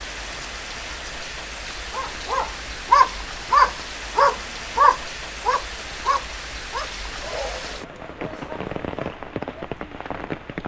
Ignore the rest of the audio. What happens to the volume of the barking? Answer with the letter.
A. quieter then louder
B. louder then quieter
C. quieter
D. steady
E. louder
C.